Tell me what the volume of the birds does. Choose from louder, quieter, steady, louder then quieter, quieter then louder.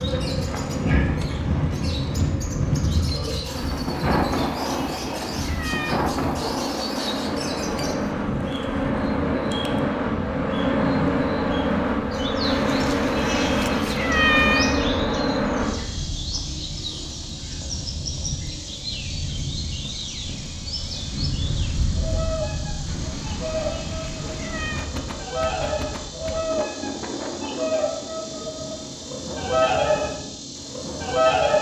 louder.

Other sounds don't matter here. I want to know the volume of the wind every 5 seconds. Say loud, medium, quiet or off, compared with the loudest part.
loud, loud, medium, medium, medium, medium, medium.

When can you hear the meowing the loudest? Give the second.
14 s.